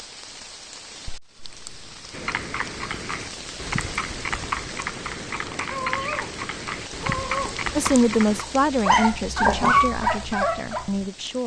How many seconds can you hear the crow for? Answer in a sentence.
You can't hear the crow here.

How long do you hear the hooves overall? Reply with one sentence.
The hooves can be heard for 6 seconds in total.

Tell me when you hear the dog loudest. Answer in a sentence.
The loudest moment of the dog is at 10 seconds.